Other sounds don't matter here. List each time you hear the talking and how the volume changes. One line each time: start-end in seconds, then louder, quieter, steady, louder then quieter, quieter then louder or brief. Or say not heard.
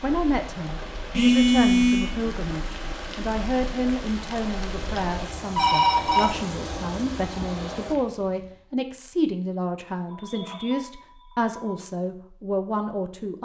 0.0-13.4 steady.